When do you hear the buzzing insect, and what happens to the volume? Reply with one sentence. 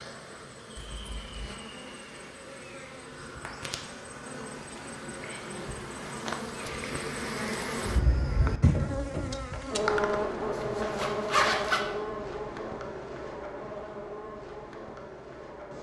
You can hear the buzzing insect from 0.0 to 15.7 s, getting louder then quieter.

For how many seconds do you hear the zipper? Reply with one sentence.
You can hear the zipper for 2 seconds altogether.